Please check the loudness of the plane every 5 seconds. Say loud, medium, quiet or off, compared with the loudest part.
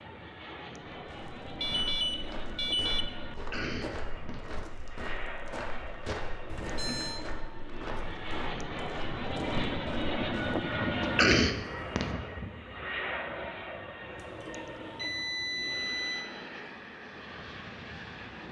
medium, loud, loud, medium.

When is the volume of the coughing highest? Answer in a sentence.
The volume of the coughing peaks at 11 seconds.